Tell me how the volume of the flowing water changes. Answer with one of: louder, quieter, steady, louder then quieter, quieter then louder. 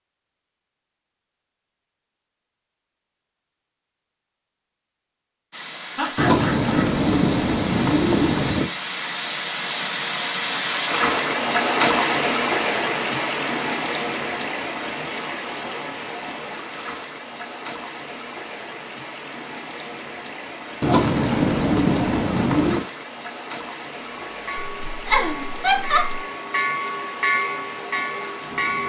louder then quieter.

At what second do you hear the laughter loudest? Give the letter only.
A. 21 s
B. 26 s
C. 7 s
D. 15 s
B.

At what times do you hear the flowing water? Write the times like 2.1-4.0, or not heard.
5.5-28.8.